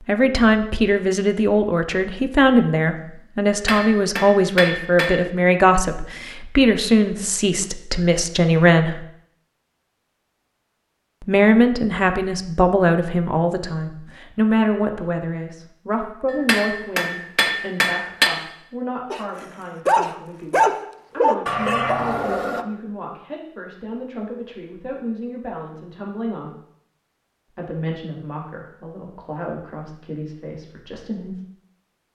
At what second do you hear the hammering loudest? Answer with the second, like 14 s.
18 s.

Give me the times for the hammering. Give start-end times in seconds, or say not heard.
3.5-5.2, 16.3-18.3.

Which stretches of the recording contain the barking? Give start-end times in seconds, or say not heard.
19.1-22.6.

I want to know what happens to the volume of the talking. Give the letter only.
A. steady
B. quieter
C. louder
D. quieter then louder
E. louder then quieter
B.